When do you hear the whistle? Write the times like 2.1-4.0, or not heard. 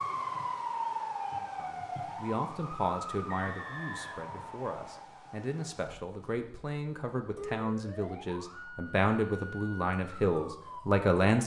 3.2-5.0.